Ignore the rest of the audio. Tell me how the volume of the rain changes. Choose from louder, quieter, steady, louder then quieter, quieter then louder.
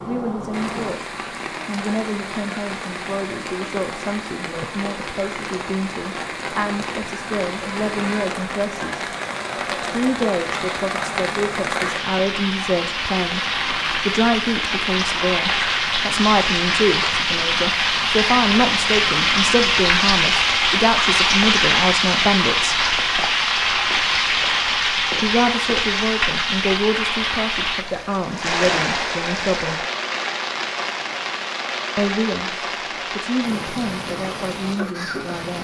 louder then quieter.